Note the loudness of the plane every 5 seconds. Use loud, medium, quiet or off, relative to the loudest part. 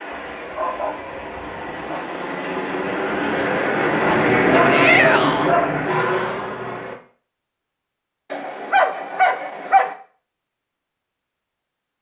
loud, loud, off.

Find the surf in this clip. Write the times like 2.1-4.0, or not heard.
not heard.